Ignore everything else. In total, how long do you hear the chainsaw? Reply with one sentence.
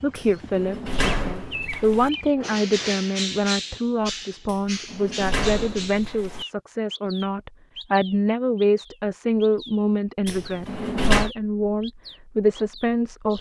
You can't hear the chainsaw here.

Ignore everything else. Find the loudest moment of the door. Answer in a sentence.
The loudest moment of the door is at 11 seconds.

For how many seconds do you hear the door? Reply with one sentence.
The door can be heard for 5 seconds in total.